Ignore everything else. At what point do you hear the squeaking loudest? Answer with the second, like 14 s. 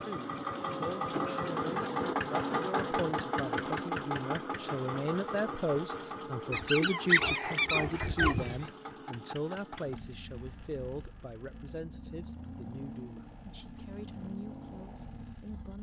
7 s.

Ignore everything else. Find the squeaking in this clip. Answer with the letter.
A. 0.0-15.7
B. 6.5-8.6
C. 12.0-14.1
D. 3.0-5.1
B.